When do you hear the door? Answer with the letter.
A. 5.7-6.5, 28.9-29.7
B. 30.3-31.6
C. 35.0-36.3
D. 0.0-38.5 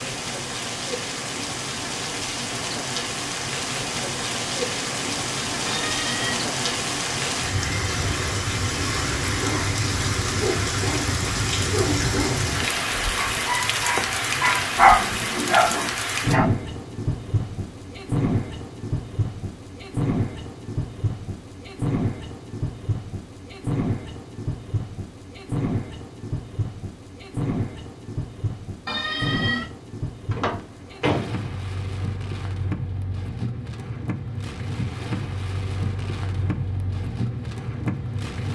B.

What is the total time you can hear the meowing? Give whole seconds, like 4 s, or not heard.
2 s.